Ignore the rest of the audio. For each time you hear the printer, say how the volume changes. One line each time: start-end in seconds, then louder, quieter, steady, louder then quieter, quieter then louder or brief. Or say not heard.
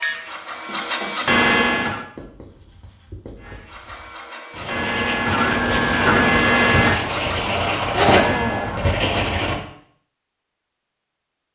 0.0-2.0 brief
3.4-8.8 louder then quieter.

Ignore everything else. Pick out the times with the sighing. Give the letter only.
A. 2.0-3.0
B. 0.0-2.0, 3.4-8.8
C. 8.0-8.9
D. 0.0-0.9
C.